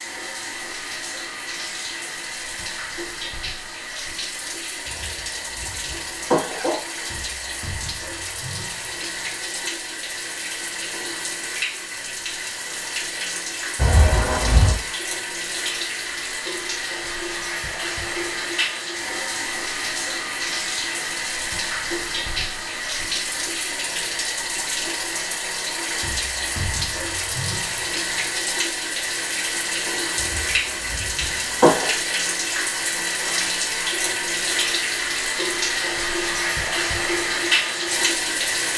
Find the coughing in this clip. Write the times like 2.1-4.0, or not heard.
4.8-6.8, 13.8-14.8, 30.1-31.9.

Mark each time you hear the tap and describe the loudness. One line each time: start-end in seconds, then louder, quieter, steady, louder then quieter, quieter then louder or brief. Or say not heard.
0.0-38.7 louder.